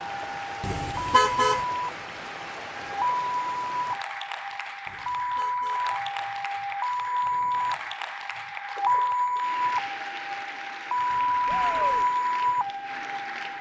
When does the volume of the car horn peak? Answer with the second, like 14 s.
1 s.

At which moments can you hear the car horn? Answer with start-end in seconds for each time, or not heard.
0.6-1.6, 4.8-5.9, 11.1-12.1.